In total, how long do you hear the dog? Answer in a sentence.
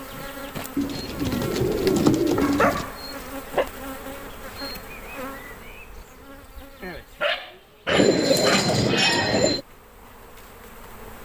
You can hear the dog for 3 seconds altogether.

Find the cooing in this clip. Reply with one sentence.
The cooing can be heard from 0.8 to 2.9 s and from 7.8 to 9.6 s.